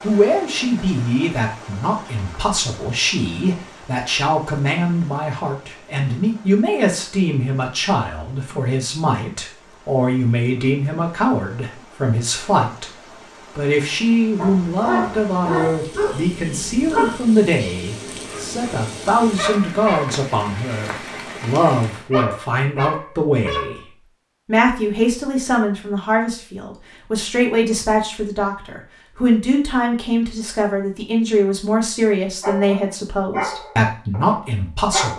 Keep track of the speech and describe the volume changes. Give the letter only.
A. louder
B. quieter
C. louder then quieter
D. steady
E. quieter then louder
D.